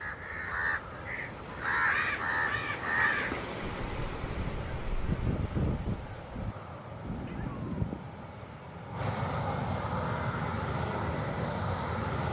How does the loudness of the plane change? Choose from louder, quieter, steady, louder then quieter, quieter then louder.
louder.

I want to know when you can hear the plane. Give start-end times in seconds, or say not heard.
0.0-12.2.